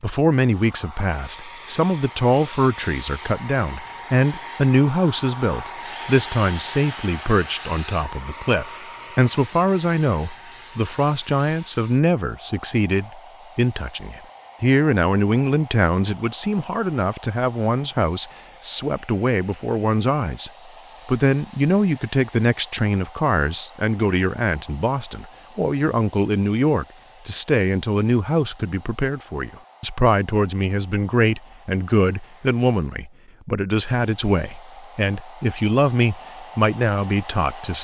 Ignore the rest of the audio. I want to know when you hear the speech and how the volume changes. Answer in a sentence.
The speech can be heard from 0.0 to 37.7 s, at a steady volume.